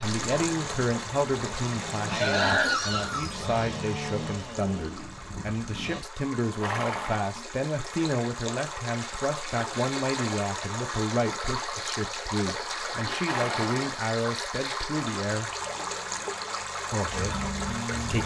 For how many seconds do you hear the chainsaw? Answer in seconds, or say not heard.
9 s.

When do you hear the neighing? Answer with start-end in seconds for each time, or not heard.
2.0-3.4, 6.4-7.3, 12.9-13.9.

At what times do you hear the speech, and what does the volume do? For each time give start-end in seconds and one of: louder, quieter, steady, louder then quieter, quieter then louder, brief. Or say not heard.
0.0-15.5 steady
16.9-18.2 brief.